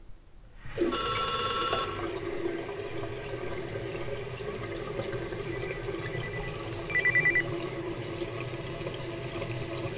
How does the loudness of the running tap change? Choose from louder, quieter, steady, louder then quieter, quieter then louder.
steady.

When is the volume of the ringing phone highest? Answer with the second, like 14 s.
7 s.